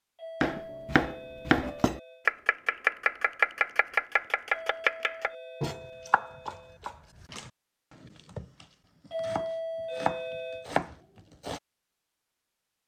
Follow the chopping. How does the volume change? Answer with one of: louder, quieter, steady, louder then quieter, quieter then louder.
quieter then louder.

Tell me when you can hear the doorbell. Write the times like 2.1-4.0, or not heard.
0.1-2.3, 4.5-6.8, 9.1-10.7.